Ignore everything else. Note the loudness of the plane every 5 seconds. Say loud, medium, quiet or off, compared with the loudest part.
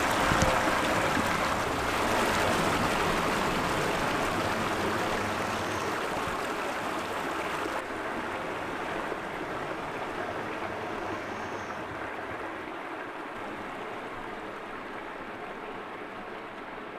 loud, medium, quiet, off.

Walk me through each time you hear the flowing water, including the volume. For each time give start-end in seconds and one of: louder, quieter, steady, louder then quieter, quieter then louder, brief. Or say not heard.
0.0-16.9 quieter.